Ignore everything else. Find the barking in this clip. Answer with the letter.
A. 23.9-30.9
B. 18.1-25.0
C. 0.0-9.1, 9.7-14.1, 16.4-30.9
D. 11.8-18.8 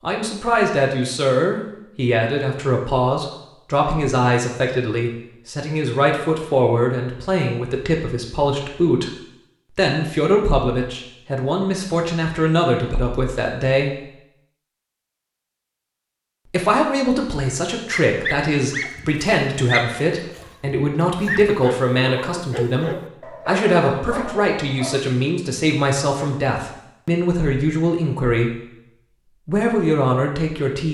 B.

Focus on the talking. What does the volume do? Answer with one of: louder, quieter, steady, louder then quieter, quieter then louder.
steady.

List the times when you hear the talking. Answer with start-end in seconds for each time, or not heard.
0.0-9.1, 9.7-14.1, 16.4-30.9.